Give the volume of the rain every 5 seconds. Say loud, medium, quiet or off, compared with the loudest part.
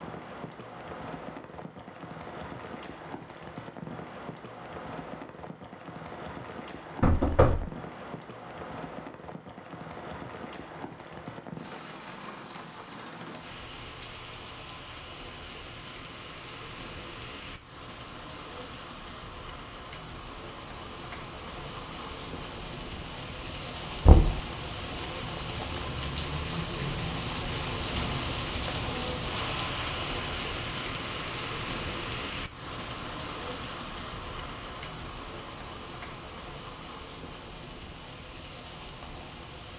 medium, medium, medium, medium, medium, loud, loud, medium.